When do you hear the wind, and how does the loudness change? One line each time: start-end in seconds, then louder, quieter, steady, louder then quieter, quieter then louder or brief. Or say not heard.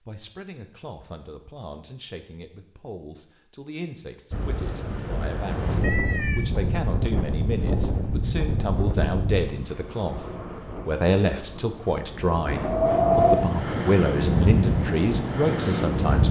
4.3-16.2 quieter then louder.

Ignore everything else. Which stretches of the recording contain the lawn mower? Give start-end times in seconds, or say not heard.
not heard.